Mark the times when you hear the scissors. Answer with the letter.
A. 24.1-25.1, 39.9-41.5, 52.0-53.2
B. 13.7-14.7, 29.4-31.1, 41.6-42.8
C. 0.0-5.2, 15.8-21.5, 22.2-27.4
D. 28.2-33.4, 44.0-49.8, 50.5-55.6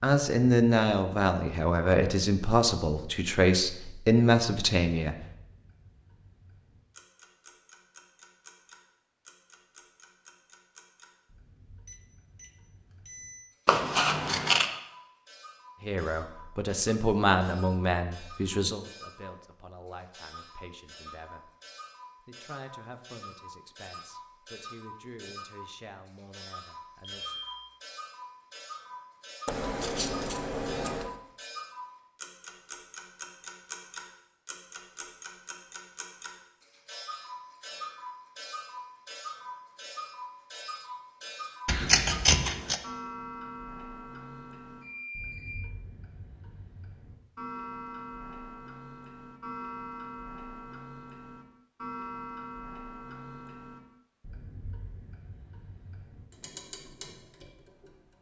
B.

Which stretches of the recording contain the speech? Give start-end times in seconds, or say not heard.
0.0-5.2, 15.8-21.5, 22.2-27.4.